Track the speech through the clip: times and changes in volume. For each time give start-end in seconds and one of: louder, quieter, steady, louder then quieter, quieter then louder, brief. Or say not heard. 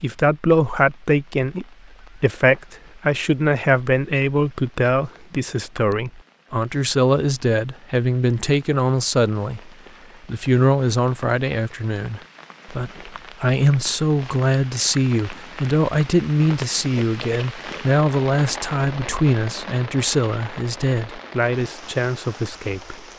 0.0-22.9 steady.